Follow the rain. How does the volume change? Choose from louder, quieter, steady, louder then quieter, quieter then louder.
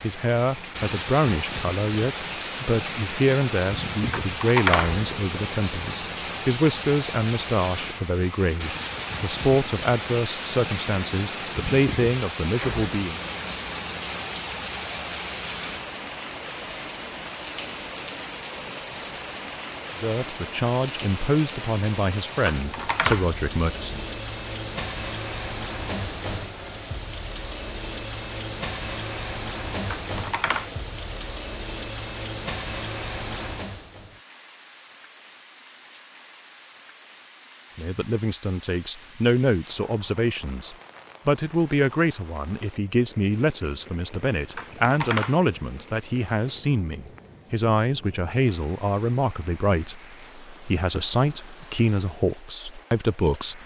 quieter.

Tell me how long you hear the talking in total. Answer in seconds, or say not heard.
33 s.